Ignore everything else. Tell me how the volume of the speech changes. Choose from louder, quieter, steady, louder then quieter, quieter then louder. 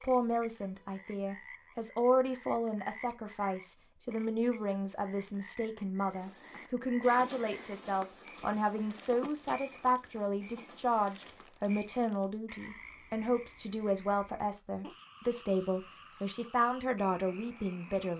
steady.